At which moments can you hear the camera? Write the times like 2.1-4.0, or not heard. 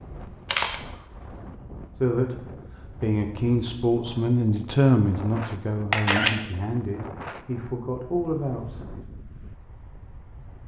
0.1-0.8, 5.9-6.3.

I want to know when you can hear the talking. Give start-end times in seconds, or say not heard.
1.9-9.1.